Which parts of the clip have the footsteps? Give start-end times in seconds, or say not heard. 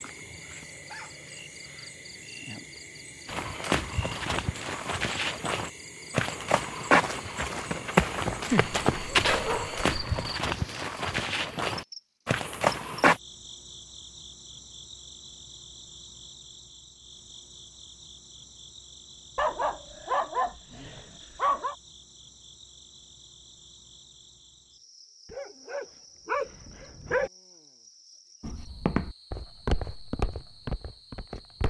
3.2-13.2, 28.4-31.6.